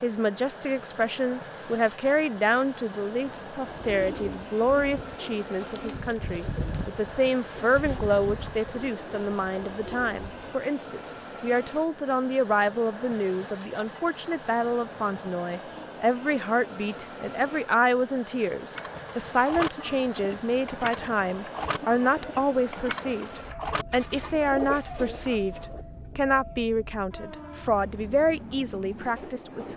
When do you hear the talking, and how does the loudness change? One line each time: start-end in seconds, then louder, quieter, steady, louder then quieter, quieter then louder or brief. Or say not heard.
0.0-29.7 steady.